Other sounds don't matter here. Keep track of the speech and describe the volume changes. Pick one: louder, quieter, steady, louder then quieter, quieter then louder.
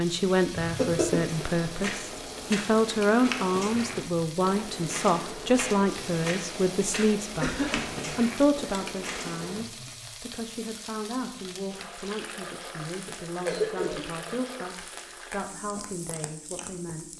quieter.